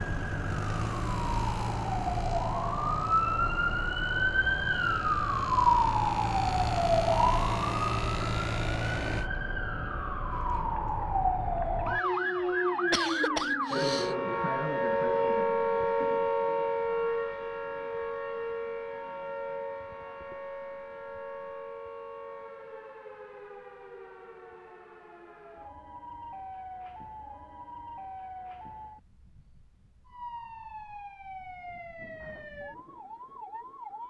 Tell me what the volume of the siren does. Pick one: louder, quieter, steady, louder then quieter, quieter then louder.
quieter.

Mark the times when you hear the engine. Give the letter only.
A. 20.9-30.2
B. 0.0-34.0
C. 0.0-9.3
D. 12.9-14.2
C.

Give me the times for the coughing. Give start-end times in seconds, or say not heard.
12.9-14.2.